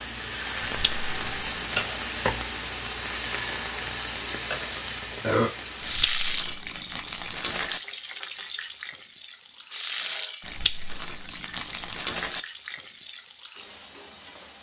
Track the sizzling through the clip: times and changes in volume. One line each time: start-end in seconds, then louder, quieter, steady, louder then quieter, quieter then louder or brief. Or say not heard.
0.0-14.5 quieter.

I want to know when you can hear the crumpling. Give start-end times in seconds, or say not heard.
0.6-1.9, 5.8-7.8, 10.4-12.4.